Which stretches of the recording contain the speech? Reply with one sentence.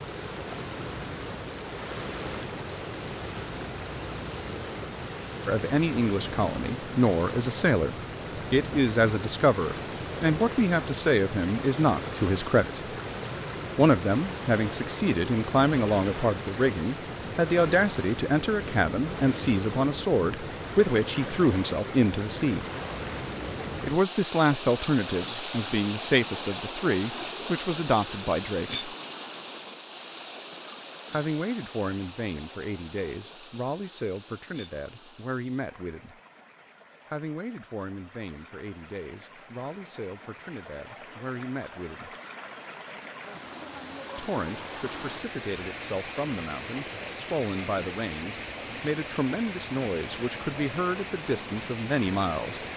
The speech can be heard from 5.5 to 12.8 s, from 13.8 to 22.6 s, from 23.8 to 28.9 s, from 31.1 to 36.2 s, from 37.1 to 42.1 s and from 44.1 to 52.6 s.